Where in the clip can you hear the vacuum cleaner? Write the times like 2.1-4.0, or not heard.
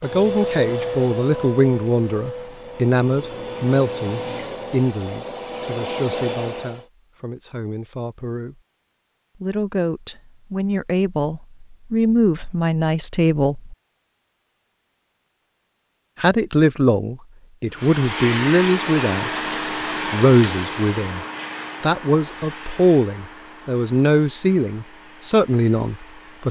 0.0-6.8, 17.7-26.4.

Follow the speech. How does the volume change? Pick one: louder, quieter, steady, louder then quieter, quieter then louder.
quieter then louder.